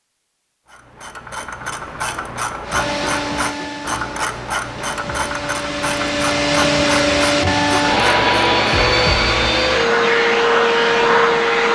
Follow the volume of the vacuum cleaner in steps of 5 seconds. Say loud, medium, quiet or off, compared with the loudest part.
quiet, loud, loud.